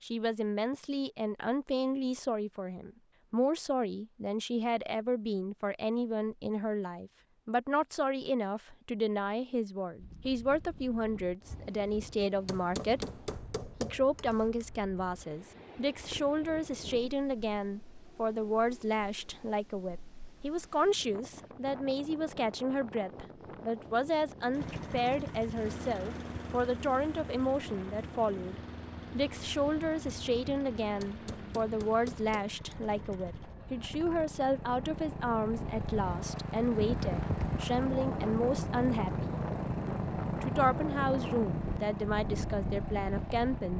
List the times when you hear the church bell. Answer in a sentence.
You can't hear the church bell here.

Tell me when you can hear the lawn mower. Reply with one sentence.
You can hear the lawn mower from 24.5 to 43.7 s.